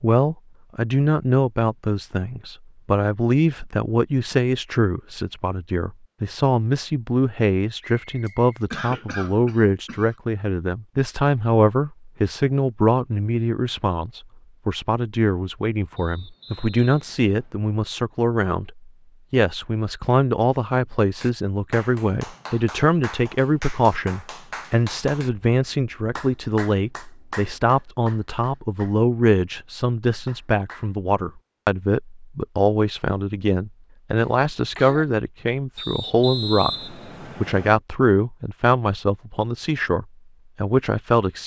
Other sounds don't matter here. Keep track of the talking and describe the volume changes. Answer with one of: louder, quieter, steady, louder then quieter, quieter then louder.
steady.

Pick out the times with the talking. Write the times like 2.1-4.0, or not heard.
0.0-41.4.